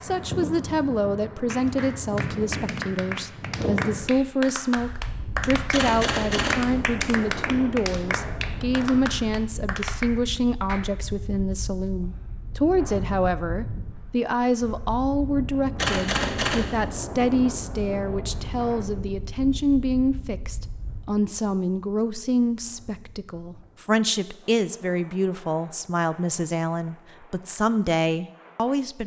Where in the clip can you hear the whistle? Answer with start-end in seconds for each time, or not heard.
not heard.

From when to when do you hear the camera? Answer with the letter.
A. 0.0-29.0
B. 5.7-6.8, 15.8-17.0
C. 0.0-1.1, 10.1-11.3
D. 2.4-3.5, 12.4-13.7
B.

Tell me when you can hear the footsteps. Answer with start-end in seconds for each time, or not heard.
not heard.